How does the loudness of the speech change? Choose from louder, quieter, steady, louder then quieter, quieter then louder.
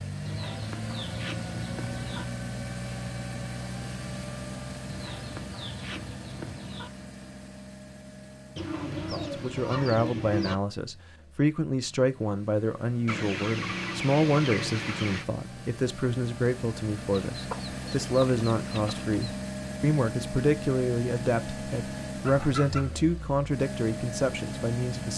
steady.